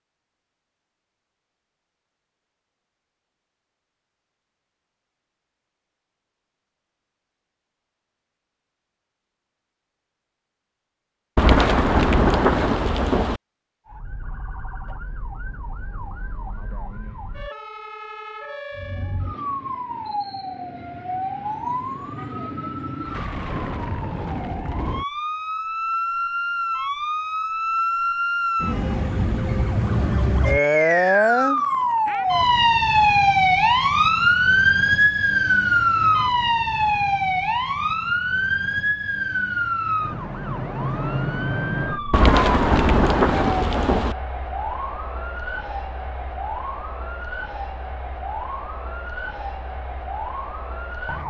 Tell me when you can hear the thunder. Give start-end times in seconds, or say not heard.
11.3-13.4, 42.1-44.1.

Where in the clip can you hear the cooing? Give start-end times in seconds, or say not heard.
not heard.